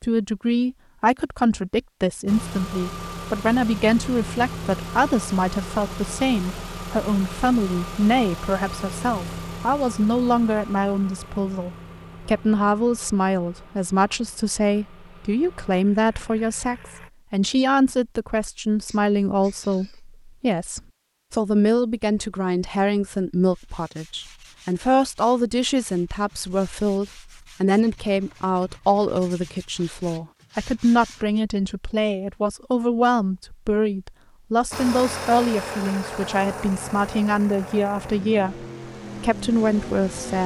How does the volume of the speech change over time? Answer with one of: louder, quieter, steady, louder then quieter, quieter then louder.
steady.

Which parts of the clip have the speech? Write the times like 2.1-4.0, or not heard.
0.0-40.4.